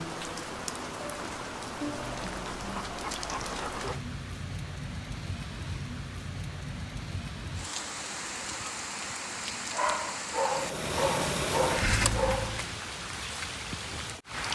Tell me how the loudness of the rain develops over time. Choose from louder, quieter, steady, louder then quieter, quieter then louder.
steady.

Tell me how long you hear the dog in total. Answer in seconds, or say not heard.
5 s.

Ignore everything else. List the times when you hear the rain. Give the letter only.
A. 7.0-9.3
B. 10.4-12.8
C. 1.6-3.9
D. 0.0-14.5
D.